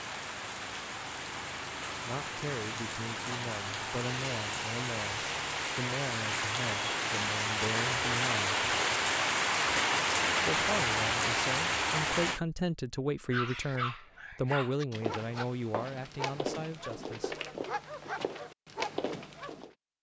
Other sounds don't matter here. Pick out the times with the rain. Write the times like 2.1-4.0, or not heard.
0.0-12.4.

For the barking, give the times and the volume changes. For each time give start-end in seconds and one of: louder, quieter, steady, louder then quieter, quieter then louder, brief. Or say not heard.
13.3-19.8 steady.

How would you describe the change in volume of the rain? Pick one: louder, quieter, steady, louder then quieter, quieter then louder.
louder.